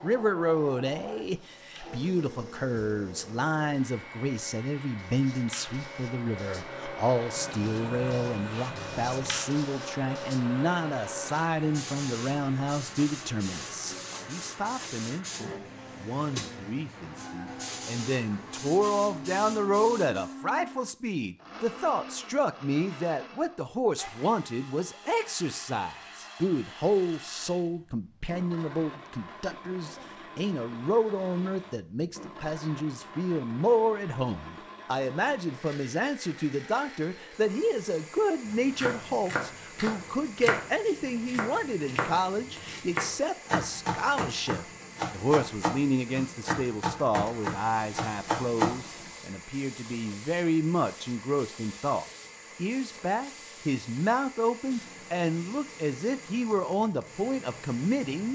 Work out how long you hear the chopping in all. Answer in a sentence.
The chopping can be heard for 11 seconds in total.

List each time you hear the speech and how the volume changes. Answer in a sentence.
You can hear the speech from 0.0 to 58.2 s, at a steady volume.